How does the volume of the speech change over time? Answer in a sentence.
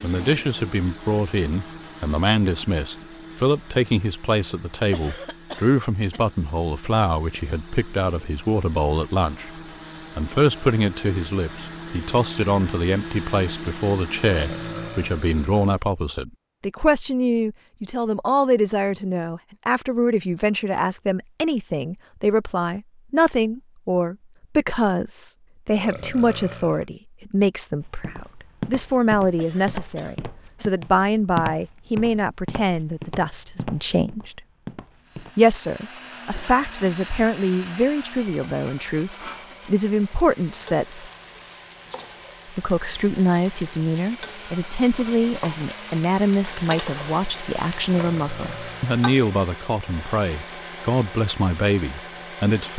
The loudness of the speech stays about the same.